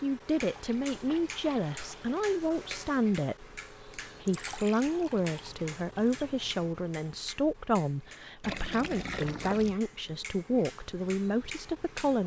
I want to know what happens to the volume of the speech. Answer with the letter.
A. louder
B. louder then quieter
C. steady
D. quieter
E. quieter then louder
C.